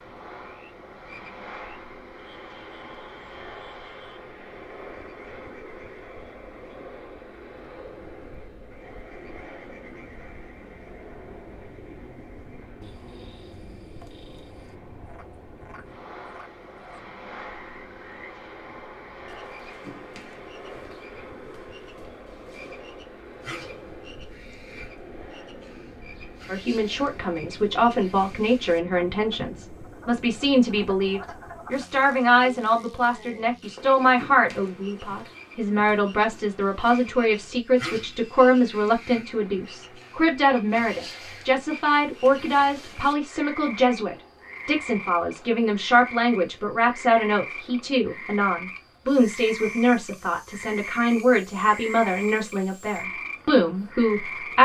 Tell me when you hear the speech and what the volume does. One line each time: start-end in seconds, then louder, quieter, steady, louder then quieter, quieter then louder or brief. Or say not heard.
26.4-54.5 steady.